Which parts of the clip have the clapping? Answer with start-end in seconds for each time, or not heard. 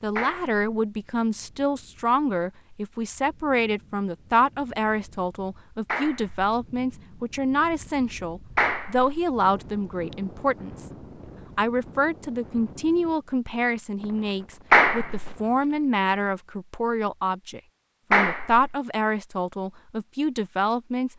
0.1-0.6, 5.8-6.5, 8.6-9.1, 14.7-15.3, 18.1-18.7.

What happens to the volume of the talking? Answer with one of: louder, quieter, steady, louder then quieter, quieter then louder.
steady.